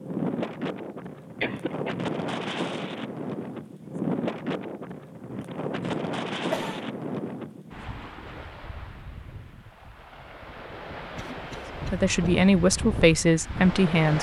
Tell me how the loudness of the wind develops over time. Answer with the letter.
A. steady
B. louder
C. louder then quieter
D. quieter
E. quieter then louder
E.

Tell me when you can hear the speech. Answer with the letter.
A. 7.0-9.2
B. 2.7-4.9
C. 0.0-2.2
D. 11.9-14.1
D.